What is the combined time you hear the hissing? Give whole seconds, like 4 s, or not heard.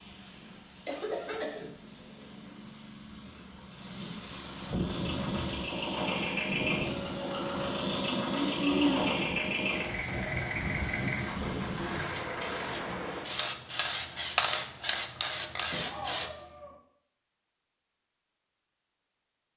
16 s.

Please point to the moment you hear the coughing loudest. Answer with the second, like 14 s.
9 s.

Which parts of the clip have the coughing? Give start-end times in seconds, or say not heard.
0.8-1.7, 8.1-9.2, 15.7-16.8.